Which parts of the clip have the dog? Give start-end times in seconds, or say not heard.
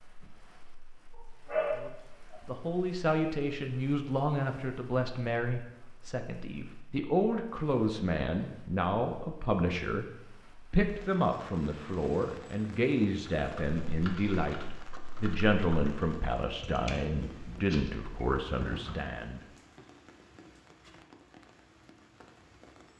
1.1-2.4.